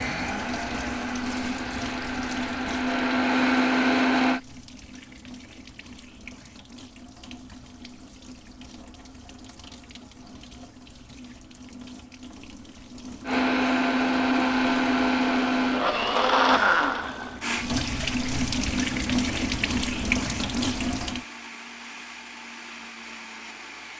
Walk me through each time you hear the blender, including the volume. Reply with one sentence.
The blender can be heard from 0.0 to 4.4 s, getting louder; and from 13.2 to 23.9 s, getting quieter.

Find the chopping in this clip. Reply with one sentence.
You can't hear the chopping here.